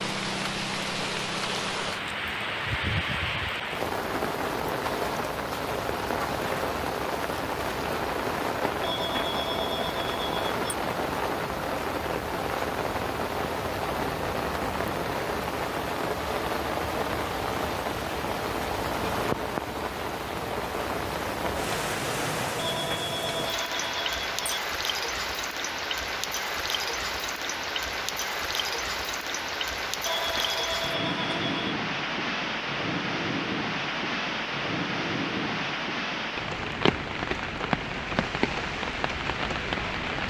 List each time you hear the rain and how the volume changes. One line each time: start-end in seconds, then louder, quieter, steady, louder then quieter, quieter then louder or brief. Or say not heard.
0.0-40.2 steady.